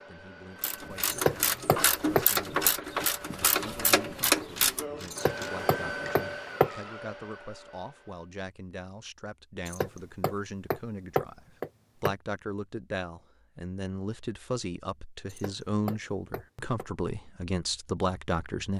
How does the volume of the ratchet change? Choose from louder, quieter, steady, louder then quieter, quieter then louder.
quieter.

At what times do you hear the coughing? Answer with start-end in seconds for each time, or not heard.
not heard.